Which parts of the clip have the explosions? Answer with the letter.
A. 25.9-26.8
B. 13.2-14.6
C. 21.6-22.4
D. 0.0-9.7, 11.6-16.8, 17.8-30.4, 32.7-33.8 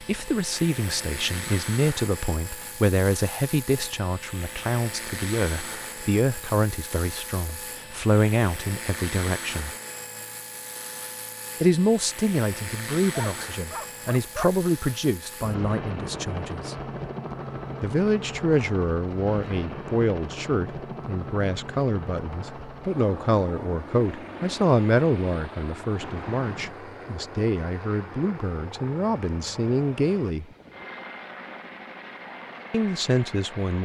A.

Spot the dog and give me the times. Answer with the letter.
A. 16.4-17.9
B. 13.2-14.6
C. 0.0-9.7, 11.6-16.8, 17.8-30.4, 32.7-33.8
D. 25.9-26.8
B.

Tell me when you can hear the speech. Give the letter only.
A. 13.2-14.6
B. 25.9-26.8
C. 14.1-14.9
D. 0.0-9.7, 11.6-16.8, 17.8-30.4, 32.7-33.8
D.